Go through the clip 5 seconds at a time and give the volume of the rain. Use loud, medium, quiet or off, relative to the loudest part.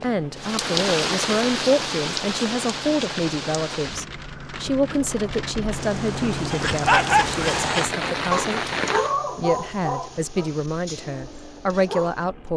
loud, loud, off.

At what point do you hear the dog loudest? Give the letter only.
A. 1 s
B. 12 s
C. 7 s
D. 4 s
C.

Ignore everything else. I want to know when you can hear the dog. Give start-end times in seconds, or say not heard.
6.5-12.5.